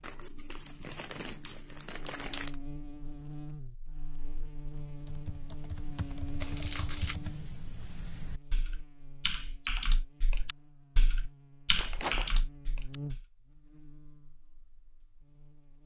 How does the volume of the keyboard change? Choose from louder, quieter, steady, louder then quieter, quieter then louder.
louder.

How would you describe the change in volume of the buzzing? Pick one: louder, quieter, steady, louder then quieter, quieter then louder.
quieter then louder.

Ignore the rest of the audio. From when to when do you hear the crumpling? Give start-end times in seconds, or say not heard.
0.0-2.5, 6.4-7.2, 11.8-12.4.